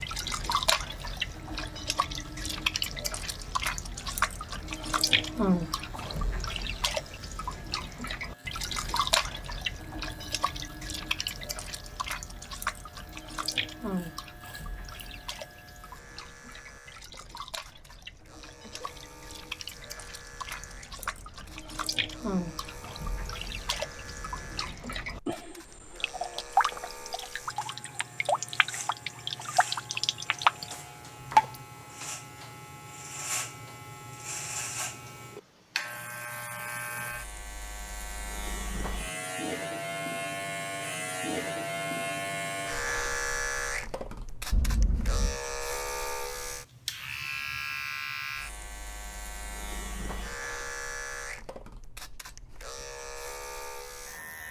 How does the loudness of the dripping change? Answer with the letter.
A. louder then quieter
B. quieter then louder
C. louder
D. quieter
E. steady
B.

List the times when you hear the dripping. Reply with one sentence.
The dripping can be heard from 0.0 to 31.6 s.